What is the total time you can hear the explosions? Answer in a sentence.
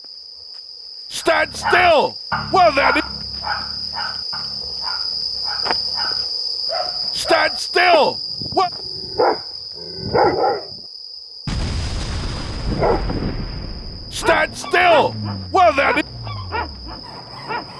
You can hear the explosions for 3 seconds altogether.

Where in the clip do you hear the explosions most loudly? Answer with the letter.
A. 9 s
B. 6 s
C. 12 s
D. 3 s
C.